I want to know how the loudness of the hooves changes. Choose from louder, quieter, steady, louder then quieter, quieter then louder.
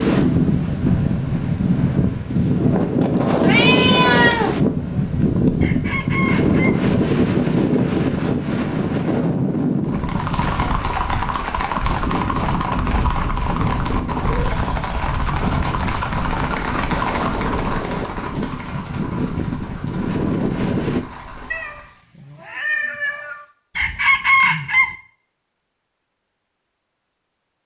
quieter.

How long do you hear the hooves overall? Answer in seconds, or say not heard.
12 s.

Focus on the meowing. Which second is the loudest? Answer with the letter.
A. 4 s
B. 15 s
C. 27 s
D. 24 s
A.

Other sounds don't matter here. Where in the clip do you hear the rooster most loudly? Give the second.
24 s.